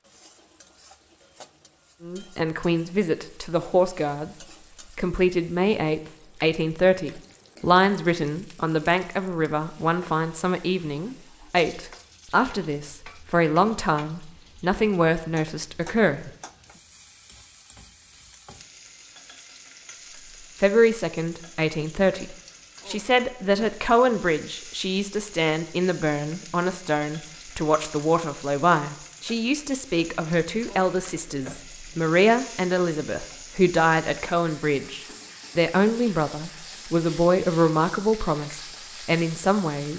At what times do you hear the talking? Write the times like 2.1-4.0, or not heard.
2.0-4.3, 5.0-16.3, 20.6-39.9.